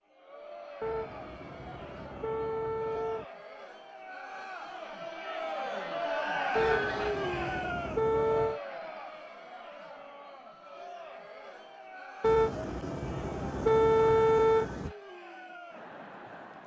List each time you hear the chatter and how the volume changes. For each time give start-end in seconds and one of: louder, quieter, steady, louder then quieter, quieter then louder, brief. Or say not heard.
0.0-16.6 louder then quieter.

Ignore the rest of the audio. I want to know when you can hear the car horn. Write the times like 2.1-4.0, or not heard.
0.8-3.2, 6.5-8.6, 12.2-14.9.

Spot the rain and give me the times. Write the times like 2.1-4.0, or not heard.
not heard.